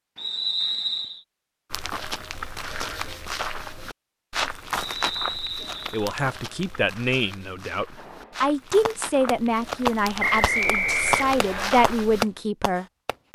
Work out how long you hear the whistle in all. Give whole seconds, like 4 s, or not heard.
4 s.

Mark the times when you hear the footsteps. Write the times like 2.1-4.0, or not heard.
1.7-12.2.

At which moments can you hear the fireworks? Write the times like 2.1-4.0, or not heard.
8.0-13.2.